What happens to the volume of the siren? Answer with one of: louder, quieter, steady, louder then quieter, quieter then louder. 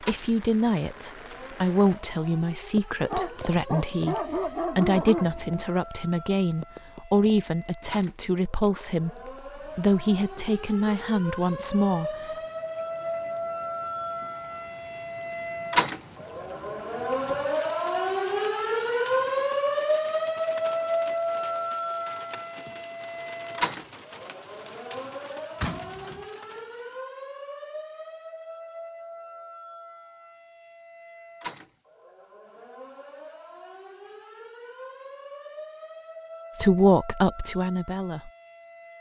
louder then quieter.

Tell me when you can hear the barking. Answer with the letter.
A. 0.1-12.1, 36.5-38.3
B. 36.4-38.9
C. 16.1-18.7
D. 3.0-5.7
D.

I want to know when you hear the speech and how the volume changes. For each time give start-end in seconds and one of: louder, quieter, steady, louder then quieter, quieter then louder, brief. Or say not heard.
0.1-12.1 steady
36.5-38.3 brief.